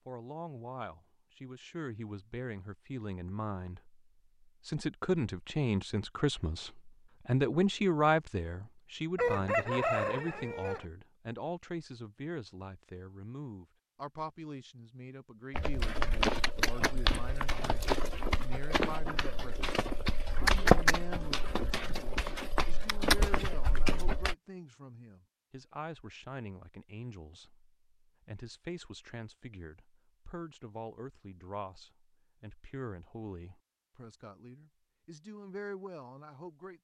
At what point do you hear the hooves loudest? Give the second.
21 s.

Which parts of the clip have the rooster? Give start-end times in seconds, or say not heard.
9.2-10.8.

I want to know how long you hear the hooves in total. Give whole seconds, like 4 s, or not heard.
9 s.